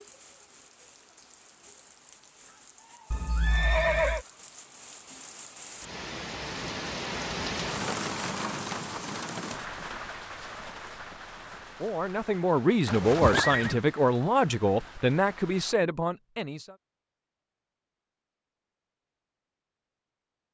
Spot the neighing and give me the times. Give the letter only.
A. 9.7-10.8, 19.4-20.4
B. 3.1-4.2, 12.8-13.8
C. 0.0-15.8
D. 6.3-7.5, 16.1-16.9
B.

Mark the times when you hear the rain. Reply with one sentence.
The rain can be heard from 0.0 to 15.8 s.